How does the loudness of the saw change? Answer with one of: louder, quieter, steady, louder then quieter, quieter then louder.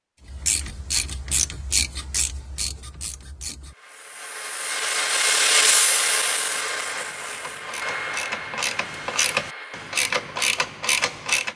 louder then quieter.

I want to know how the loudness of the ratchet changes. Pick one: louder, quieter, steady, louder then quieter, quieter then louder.
quieter then louder.